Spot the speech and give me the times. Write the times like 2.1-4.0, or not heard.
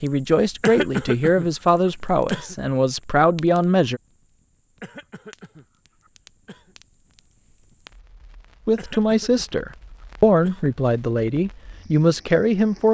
0.0-4.0, 8.7-12.8.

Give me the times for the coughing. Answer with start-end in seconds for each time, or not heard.
0.6-2.5, 4.8-6.8, 8.8-10.8.